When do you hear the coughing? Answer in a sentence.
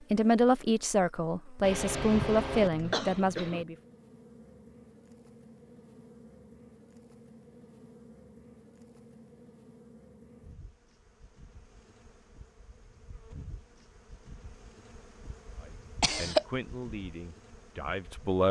You can hear the coughing from 1.6 to 3.6 s and from 16.0 to 16.4 s.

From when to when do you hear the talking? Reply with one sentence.
You can hear the talking from 0.1 to 3.8 s and from 15.6 to 18.4 s.